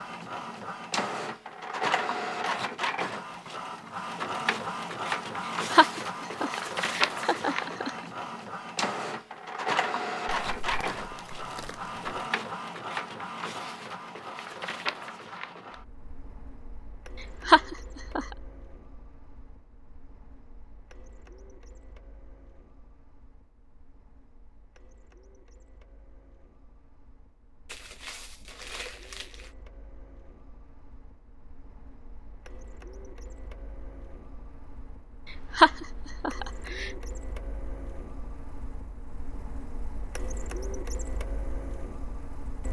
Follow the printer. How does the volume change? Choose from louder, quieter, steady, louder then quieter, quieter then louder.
quieter then louder.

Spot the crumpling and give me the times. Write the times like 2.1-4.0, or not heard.
10.4-12.2, 27.6-29.5.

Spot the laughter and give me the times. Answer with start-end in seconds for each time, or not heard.
5.7-7.9, 17.4-18.2, 35.5-36.9.